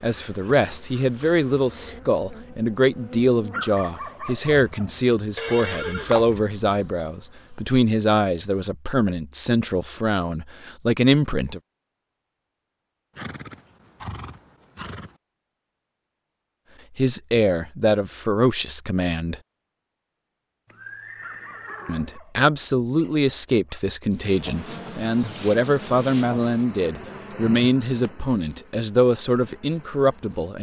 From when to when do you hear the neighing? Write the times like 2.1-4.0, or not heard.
5.3-6.4, 13.2-15.2, 20.6-22.2.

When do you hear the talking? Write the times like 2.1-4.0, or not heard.
0.0-11.6, 16.9-19.4, 21.9-30.5.